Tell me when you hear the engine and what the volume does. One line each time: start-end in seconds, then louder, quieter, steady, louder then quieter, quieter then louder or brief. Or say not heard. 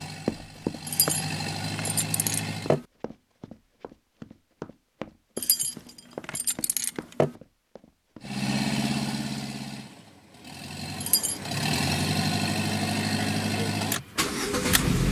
0.0-2.8 brief
8.2-15.0 quieter then louder.